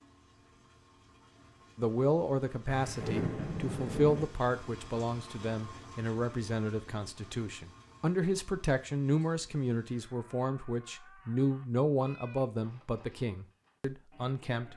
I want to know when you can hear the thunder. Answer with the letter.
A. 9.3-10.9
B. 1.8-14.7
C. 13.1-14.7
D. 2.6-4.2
D.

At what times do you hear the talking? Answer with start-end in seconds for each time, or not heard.
1.8-14.7.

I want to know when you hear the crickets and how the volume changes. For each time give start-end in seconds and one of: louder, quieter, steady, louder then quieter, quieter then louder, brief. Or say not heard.
not heard.